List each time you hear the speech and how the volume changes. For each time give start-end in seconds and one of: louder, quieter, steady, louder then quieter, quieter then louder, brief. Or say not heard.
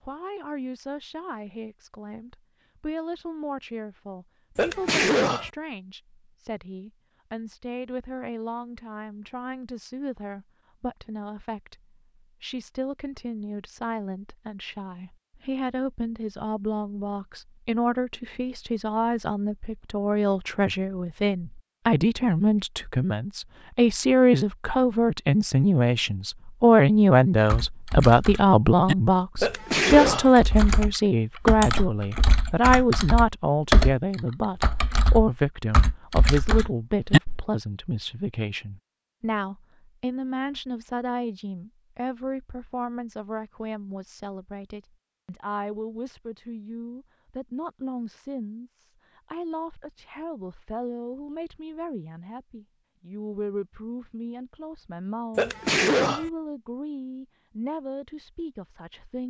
0.0-59.2 louder then quieter.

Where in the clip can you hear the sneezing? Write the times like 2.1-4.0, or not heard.
4.5-5.5, 29.4-30.4, 55.4-56.3.